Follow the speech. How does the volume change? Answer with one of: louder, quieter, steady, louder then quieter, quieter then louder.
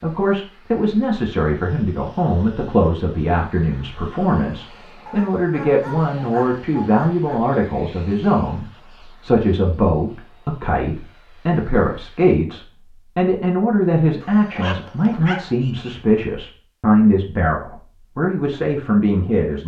steady.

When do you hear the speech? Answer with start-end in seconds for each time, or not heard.
0.0-19.6.